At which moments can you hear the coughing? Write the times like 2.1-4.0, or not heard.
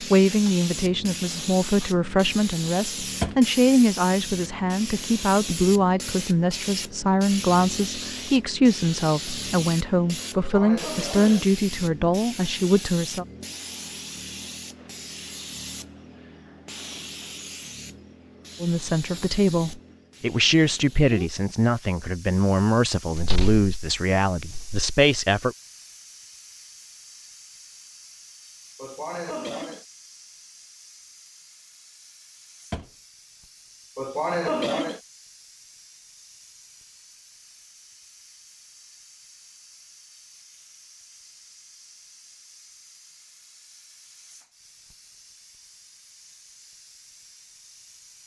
10.3-11.4, 28.8-29.9, 34.0-35.0.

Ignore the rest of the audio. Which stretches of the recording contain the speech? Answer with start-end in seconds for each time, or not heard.
0.0-13.2, 18.6-25.6.